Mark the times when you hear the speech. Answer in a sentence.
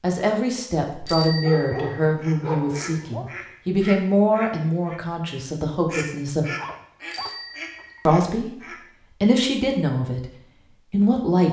The speech can be heard from 0.0 to 6.5 s, from 8.1 to 8.6 s, from 9.2 to 10.2 s and from 10.9 to 11.4 s.